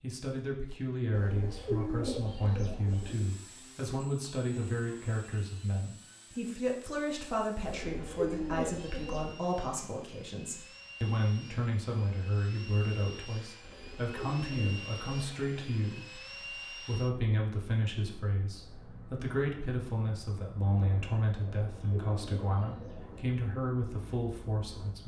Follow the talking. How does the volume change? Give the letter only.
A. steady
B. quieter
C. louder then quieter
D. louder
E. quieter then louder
A.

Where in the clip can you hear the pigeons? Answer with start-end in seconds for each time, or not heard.
1.1-3.1, 7.7-9.3, 13.6-15.4, 21.6-23.2.